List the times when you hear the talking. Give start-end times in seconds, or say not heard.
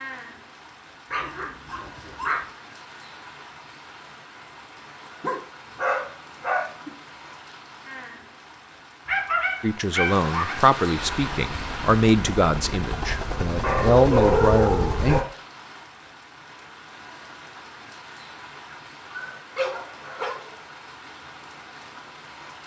9.6-15.2.